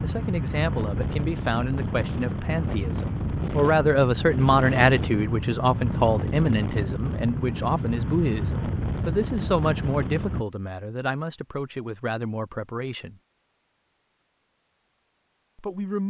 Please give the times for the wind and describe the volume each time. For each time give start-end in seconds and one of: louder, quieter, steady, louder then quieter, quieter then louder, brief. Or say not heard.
0.0-10.4 steady.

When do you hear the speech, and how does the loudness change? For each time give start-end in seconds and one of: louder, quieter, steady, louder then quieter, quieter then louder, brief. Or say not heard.
0.0-13.2 louder then quieter
15.6-16.0 brief.